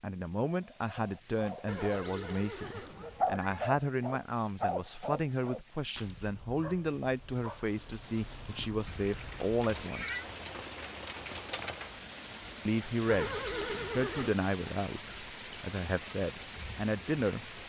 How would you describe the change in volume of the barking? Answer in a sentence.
The volume of the barking goes up, then down.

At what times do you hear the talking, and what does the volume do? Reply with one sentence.
The talking can be heard from 0.0 to 10.2 s, at a steady volume; and from 12.7 to 17.6 s, getting quieter then louder.